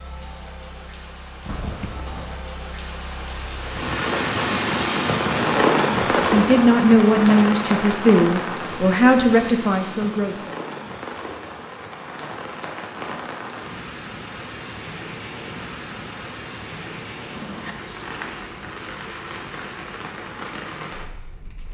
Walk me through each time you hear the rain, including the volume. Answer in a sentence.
The rain can be heard from 0.0 to 21.6 s, getting louder then quieter.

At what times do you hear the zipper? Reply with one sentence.
You can hear the zipper from 1.4 to 2.5 s.